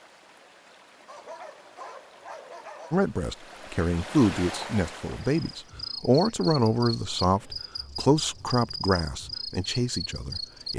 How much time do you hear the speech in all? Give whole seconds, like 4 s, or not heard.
8 s.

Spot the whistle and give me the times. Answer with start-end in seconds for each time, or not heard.
not heard.